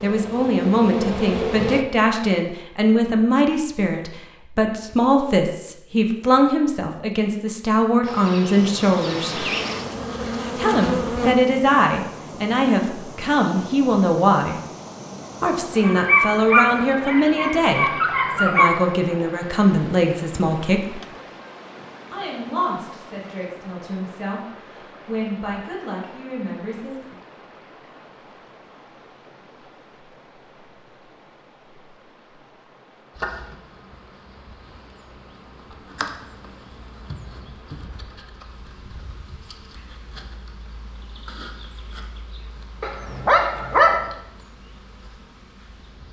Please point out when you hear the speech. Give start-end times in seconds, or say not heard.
0.0-9.5, 10.6-14.6, 15.4-21.0, 22.1-27.1.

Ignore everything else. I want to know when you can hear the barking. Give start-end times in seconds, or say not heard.
15.8-18.7, 42.8-44.1.